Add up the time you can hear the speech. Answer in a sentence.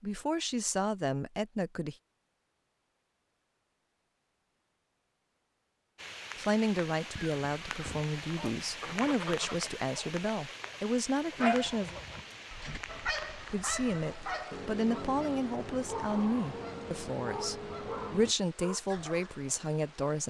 You can hear the speech for 14 seconds altogether.